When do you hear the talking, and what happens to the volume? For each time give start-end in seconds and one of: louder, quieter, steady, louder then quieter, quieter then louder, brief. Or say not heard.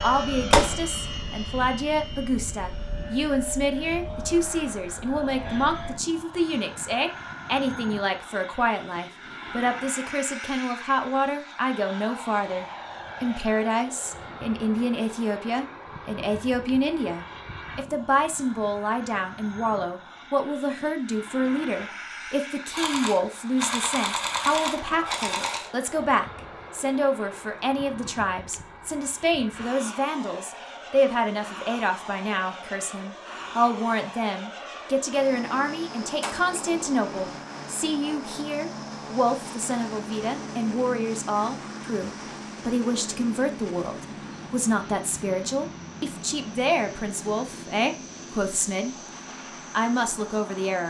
0.0-49.0 steady
49.7-50.8 brief.